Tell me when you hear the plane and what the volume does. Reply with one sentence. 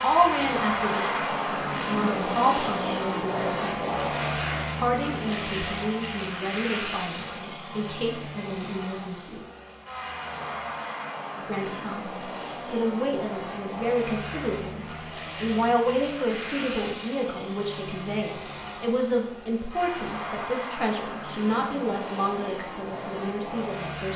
The plane can be heard from 0.0 to 24.1 s, getting quieter.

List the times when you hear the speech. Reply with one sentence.
You can hear the speech from 0.0 to 9.4 s and from 11.4 to 24.1 s.